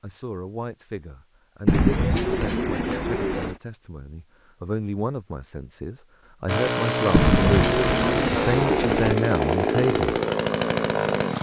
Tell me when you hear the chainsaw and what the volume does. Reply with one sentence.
You can hear the chainsaw from 6.5 to 11.3 s, at a steady volume.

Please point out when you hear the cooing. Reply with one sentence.
You can hear the cooing from 1.6 to 3.5 s and from 7.1 to 9.2 s.